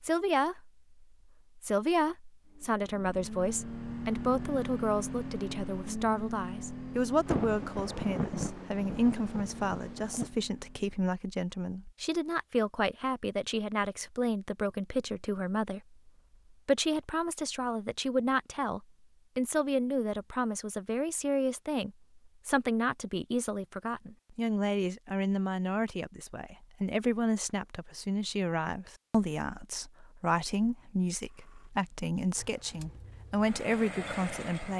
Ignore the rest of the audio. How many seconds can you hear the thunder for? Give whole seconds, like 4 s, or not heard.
3 s.